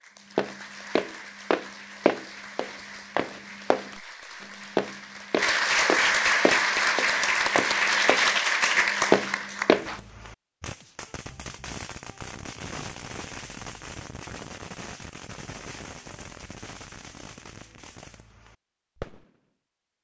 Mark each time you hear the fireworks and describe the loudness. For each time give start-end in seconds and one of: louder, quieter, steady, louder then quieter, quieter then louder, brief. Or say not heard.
9.7-19.4 quieter.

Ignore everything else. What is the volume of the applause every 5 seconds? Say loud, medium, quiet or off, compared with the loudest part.
quiet, loud, off, off.